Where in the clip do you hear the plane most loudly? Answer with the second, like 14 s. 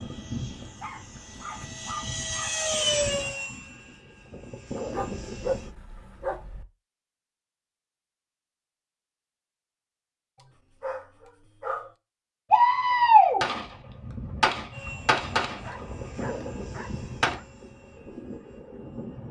3 s.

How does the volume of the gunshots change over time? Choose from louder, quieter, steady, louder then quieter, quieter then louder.
quieter.